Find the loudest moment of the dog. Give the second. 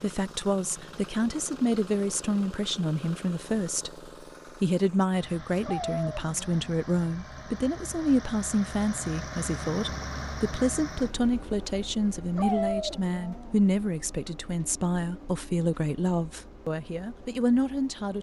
13 s.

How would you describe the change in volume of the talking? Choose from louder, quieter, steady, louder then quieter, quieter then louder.
steady.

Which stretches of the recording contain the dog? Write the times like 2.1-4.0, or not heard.
5.6-6.8, 12.3-13.6.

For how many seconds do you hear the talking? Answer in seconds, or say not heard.
18 s.